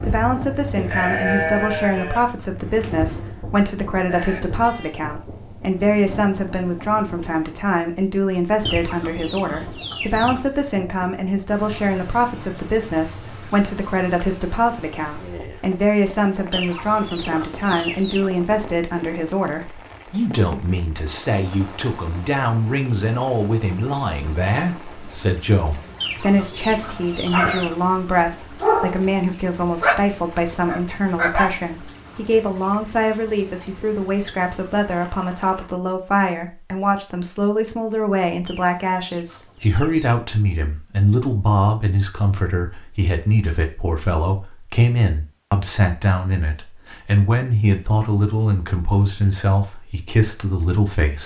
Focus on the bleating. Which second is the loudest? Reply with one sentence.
The loudest moment of the bleating is at 1 second.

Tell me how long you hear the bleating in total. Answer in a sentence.
You can hear the bleating for 5 seconds altogether.